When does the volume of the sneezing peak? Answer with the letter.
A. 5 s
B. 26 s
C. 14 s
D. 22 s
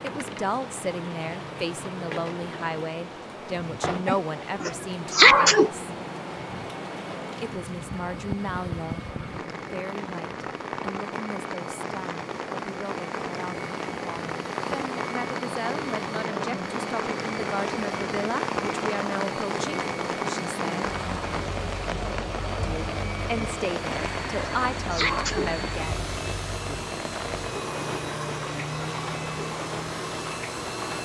A.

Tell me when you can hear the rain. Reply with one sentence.
You can hear the rain from 0.0 to 31.0 s.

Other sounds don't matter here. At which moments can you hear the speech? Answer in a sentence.
You can hear the speech from 0.0 to 5.7 s, from 7.4 to 20.9 s and from 22.6 to 26.1 s.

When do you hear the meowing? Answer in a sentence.
The meowing can't be heard in this clip.